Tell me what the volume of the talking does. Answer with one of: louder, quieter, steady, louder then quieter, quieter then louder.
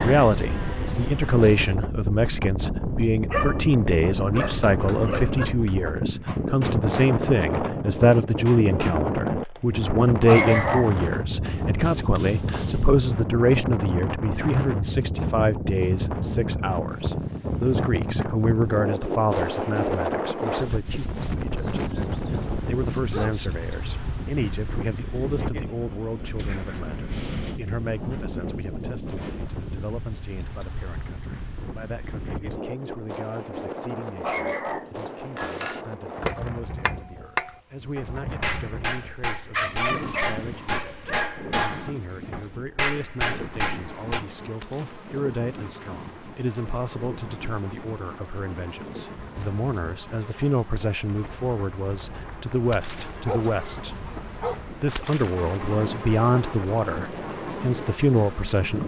quieter then louder.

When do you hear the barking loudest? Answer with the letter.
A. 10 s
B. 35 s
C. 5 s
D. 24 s
A.